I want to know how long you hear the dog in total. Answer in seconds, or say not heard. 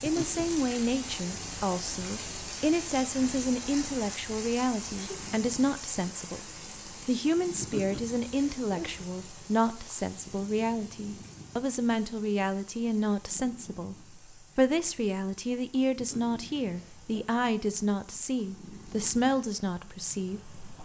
not heard.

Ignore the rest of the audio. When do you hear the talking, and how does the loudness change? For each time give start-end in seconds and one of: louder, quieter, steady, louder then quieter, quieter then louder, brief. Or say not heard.
0.0-20.6 steady.